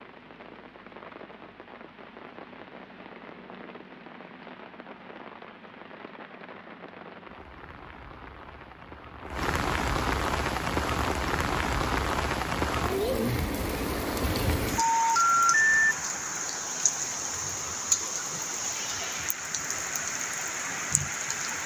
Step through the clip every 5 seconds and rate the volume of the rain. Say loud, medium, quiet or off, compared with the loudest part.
quiet, medium, loud, loud, loud.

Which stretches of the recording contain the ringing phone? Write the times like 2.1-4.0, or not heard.
14.8-15.8.